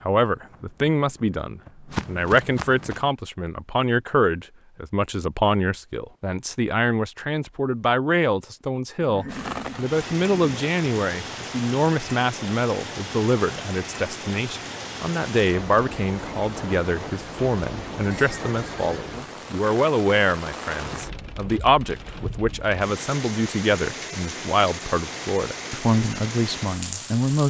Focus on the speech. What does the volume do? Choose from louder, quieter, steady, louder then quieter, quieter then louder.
steady.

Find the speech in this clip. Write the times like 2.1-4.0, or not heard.
0.0-27.4.